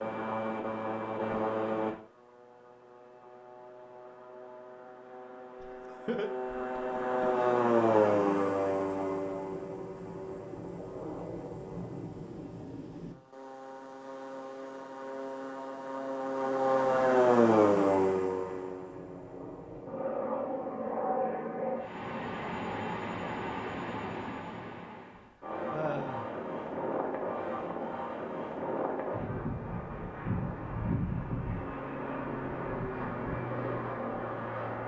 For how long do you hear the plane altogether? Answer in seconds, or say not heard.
35 s.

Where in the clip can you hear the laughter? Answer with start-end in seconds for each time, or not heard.
5.6-7.5, 25.7-26.2.